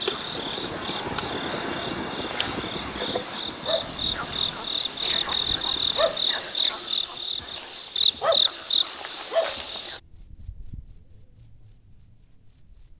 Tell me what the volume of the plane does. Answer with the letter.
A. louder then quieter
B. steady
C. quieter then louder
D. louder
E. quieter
E.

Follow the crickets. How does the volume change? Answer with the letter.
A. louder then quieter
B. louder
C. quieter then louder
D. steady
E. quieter
B.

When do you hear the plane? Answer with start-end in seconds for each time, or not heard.
0.0-6.5.